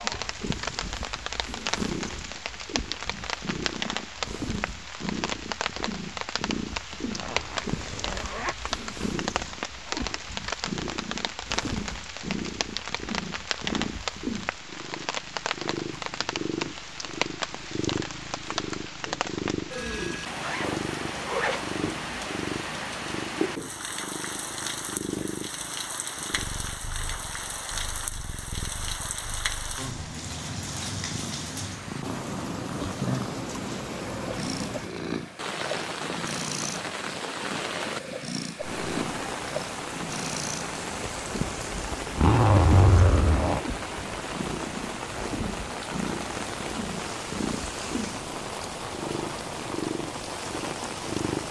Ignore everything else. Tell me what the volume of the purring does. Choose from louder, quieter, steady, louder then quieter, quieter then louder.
steady.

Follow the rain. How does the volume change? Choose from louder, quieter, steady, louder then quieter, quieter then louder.
steady.